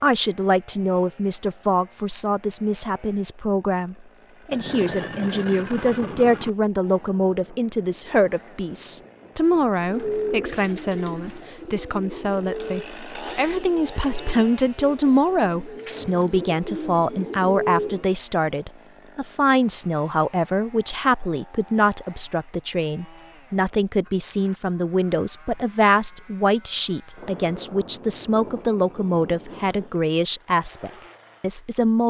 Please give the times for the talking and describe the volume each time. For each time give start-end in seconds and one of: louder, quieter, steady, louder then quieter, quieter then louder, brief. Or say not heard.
0.0-32.0 steady.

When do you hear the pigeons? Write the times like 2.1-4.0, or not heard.
9.8-18.1.